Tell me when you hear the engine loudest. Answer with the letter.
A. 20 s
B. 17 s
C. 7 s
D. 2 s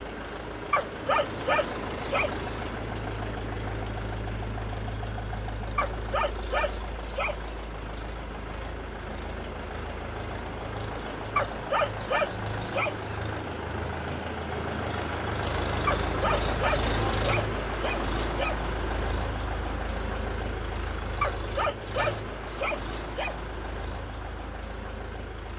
B.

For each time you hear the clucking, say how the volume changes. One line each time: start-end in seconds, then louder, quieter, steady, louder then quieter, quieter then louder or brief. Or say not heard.
not heard.